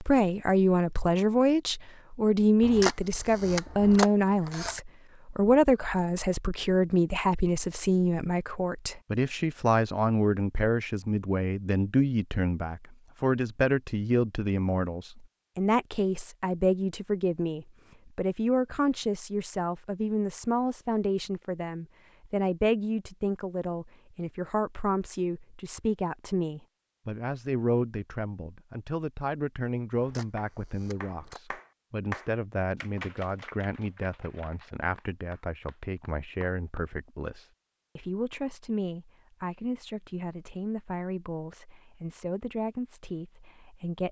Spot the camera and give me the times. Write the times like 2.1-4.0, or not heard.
2.6-4.8, 29.9-31.4.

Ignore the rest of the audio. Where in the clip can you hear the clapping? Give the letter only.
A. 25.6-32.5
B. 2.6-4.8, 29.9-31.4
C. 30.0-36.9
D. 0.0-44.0
C.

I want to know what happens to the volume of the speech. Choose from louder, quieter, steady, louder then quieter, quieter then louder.
quieter.